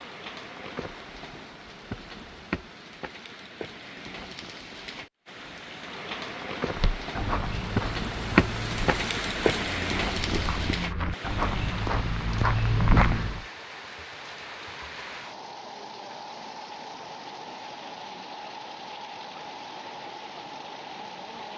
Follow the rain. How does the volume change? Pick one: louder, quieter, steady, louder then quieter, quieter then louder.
louder then quieter.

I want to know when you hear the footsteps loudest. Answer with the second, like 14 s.
13 s.